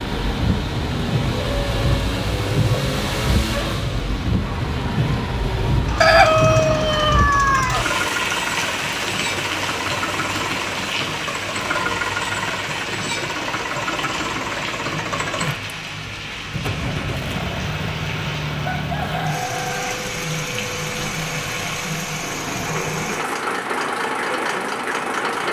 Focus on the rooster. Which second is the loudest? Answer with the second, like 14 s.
6 s.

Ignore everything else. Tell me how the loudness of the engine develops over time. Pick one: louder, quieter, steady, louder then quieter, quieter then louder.
steady.